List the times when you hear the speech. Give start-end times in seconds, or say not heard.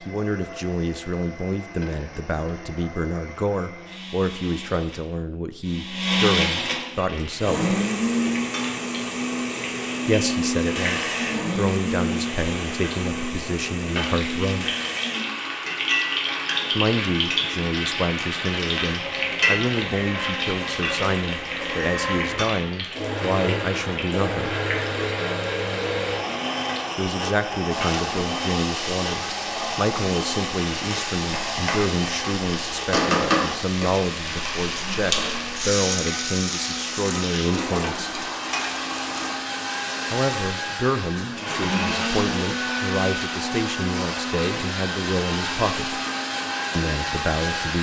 0.0-7.8, 10.1-14.8, 16.7-24.6, 26.9-38.2, 40.1-46.0, 46.8-47.7.